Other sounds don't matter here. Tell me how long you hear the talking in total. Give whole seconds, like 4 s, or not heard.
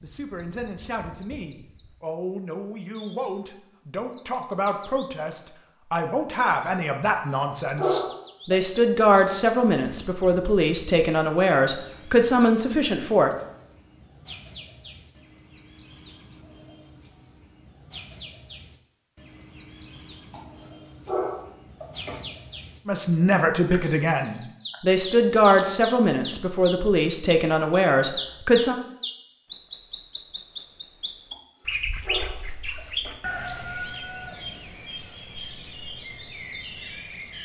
19 s.